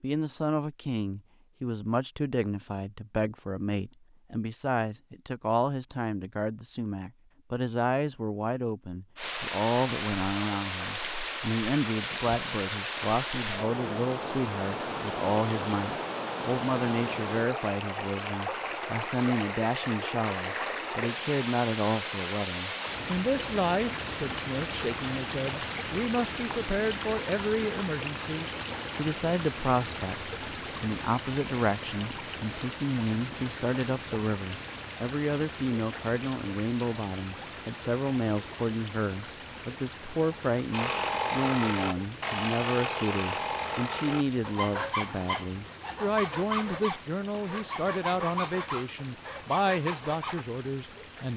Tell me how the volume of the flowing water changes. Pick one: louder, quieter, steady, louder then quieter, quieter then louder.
quieter.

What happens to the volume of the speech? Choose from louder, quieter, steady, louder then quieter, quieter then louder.
steady.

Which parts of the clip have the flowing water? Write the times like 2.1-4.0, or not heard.
9.2-51.3.